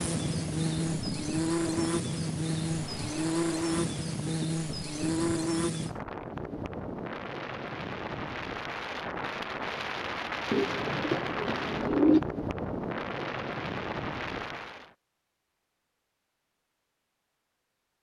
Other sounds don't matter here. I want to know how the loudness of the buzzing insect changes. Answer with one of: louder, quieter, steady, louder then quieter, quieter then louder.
steady.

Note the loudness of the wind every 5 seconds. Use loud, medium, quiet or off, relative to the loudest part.
loud, loud, loud, off.